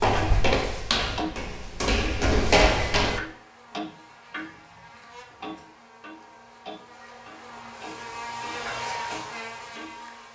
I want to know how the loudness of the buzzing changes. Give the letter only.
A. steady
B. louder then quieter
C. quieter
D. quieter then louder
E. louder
E.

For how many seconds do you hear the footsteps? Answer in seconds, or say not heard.
3 s.